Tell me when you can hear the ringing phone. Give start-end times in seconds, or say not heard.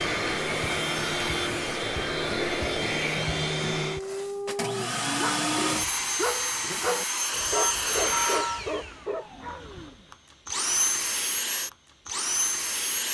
7.5-8.7.